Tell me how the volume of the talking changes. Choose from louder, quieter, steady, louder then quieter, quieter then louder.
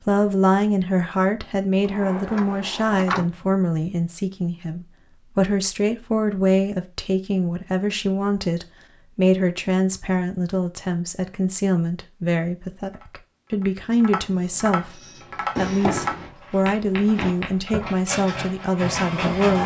steady.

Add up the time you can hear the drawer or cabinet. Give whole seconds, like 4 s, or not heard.
3 s.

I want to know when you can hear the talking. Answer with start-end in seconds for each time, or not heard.
0.1-19.6.